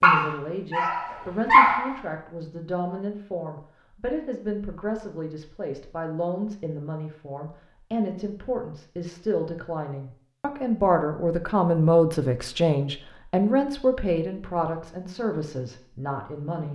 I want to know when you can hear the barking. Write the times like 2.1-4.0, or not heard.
0.0-1.9.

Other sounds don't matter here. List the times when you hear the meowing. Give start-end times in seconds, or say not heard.
not heard.